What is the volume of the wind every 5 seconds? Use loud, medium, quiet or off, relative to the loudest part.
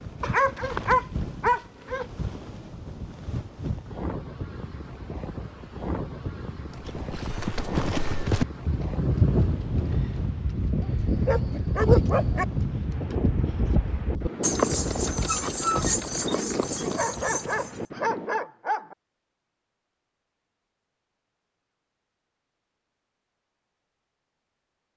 loud, loud, loud, loud, off.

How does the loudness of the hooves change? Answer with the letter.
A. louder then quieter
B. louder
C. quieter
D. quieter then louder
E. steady
E.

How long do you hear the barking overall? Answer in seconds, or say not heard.
5 s.